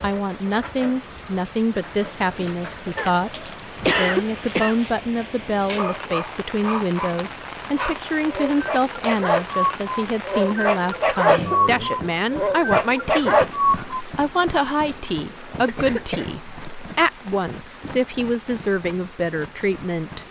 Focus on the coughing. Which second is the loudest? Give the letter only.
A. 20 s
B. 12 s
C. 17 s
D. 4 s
D.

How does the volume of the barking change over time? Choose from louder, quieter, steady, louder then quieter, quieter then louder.
louder.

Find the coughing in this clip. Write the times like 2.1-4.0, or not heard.
3.0-4.9, 10.8-11.6, 15.7-16.3.